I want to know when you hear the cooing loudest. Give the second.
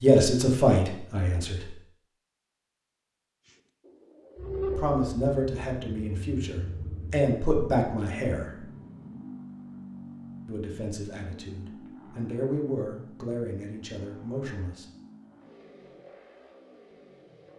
5 s.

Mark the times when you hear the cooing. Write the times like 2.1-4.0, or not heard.
3.4-5.0.